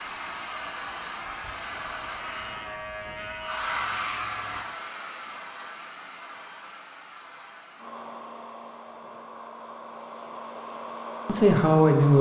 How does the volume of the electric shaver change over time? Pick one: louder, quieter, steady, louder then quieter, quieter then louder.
louder.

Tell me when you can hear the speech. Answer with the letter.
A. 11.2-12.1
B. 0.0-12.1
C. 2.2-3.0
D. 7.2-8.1
A.